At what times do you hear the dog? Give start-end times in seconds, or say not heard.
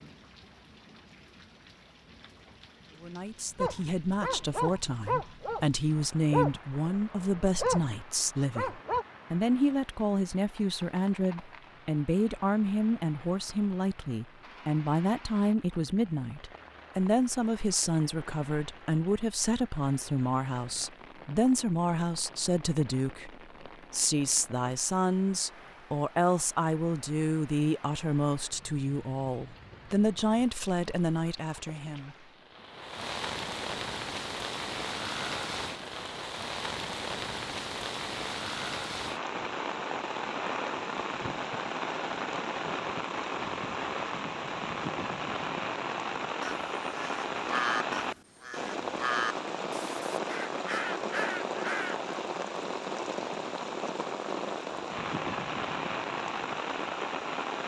3.5-5.7, 6.3-9.1.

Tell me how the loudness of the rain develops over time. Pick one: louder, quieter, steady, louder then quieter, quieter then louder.
louder.